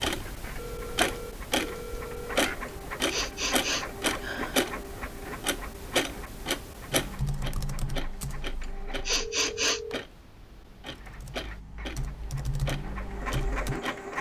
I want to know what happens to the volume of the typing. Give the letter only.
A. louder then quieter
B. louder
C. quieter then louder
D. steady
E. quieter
C.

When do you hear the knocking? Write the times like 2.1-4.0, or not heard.
not heard.